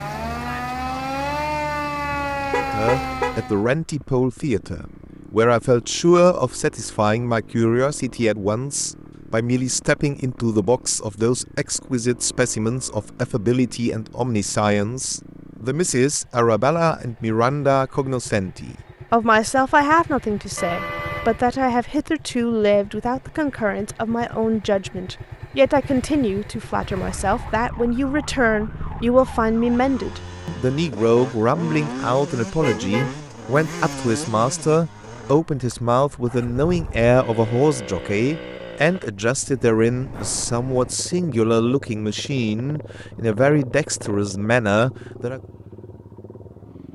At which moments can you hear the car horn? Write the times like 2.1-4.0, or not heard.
2.1-3.4, 20.6-21.4, 32.6-34.0.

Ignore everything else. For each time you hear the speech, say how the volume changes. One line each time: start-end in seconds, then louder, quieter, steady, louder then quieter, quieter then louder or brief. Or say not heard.
2.5-45.4 steady.